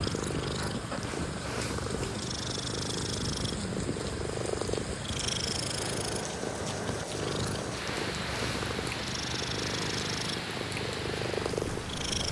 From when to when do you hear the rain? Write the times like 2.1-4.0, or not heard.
0.0-12.2.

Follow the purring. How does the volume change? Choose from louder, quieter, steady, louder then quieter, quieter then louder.
steady.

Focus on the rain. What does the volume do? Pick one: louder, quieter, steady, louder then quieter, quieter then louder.
steady.